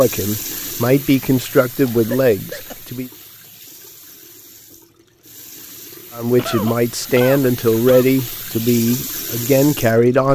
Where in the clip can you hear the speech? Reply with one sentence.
You can hear the speech from 0.0 to 3.1 s and from 6.2 to 10.3 s.